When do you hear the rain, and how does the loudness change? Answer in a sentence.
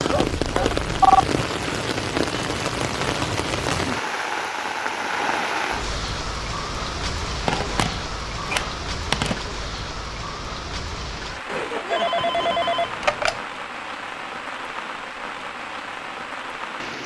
You can hear the rain from 0.0 to 17.0 s, getting quieter.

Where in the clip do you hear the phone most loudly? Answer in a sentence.
The volume of the phone peaks at 1 second.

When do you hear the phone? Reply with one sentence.
You can hear the phone from 0.1 to 1.2 s, from 7.5 to 9.4 s and from 11.4 to 13.4 s.